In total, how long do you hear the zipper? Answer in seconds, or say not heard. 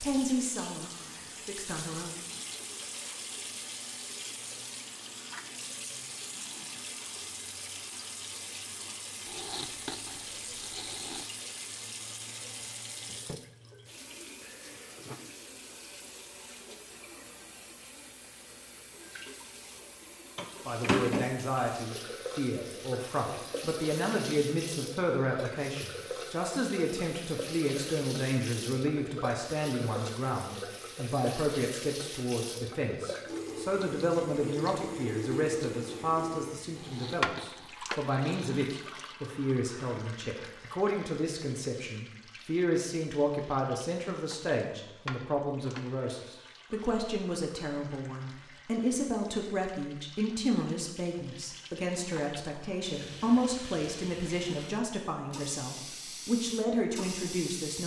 4 s.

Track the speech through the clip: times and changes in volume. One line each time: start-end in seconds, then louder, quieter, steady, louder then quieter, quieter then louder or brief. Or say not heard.
0.0-2.1 brief
20.6-57.8 steady.